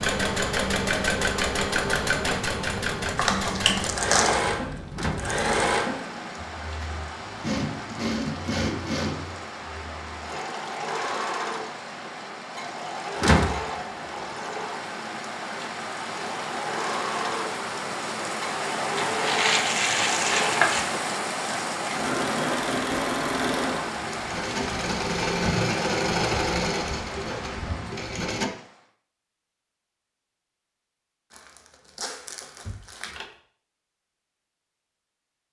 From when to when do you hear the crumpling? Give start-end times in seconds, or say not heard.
3.1-4.4, 18.9-20.9, 31.3-33.1.